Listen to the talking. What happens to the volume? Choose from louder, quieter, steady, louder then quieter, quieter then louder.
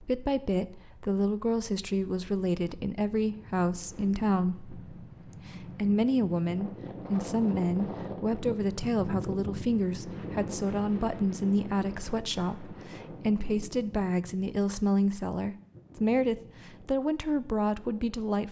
steady.